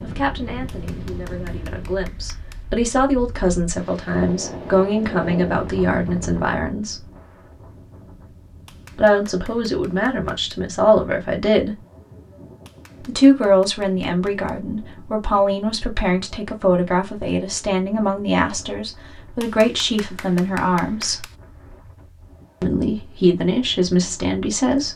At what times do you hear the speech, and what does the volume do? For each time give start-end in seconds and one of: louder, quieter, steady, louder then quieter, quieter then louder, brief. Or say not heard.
0.0-7.0 louder
8.9-11.8 brief
13.0-21.2 steady
22.6-24.9 brief.